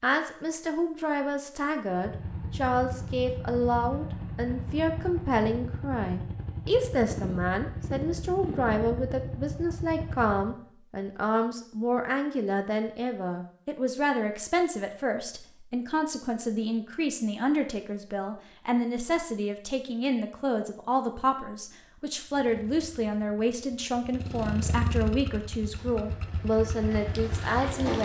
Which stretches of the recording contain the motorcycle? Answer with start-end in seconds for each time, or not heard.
1.9-10.6, 22.2-28.0.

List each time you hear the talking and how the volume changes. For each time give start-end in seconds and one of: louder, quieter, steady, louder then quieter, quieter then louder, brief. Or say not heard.
0.0-28.0 steady.